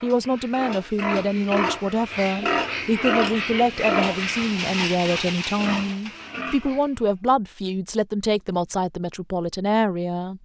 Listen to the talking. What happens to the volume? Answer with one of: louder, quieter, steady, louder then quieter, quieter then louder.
steady.